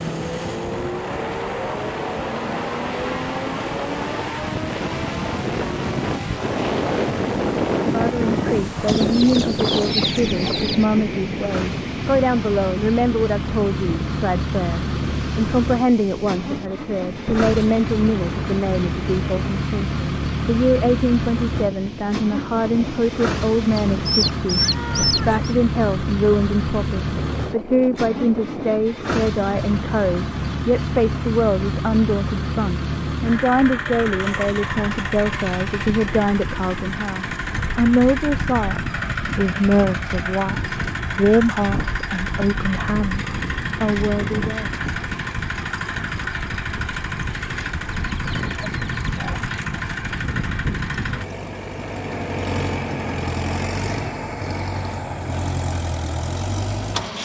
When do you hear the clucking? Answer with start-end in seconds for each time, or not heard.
8.8-10.8, 23.8-25.4, 48.1-49.5.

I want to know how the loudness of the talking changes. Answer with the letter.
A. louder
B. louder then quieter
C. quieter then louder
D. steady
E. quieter
D.